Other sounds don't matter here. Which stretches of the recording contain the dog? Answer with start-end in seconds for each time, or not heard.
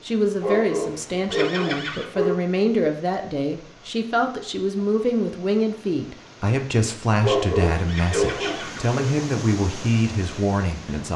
0.4-2.4, 7.2-8.9.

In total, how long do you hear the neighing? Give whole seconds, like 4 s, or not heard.
2 s.